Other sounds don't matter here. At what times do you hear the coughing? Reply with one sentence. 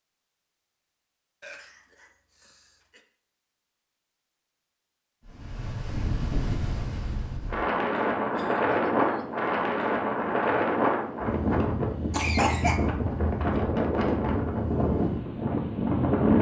You can hear the coughing from 1.4 to 3.0 s, from 8.3 to 9.4 s and from 12.1 to 12.8 s.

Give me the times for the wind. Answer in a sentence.
You can hear the wind from 5.2 to 16.3 s.